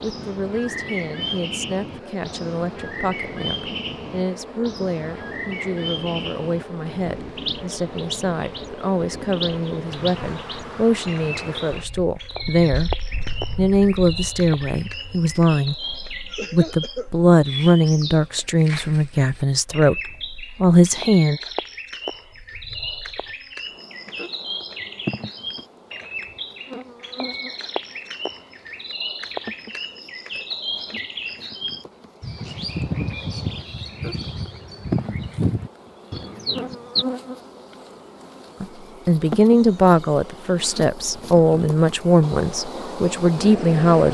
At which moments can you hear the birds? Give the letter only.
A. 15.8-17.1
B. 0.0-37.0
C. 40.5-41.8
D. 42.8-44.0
B.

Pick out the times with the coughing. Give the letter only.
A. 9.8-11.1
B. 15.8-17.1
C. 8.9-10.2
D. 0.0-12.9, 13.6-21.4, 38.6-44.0
B.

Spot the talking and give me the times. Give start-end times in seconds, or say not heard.
0.0-12.9, 13.6-21.4, 38.6-44.0.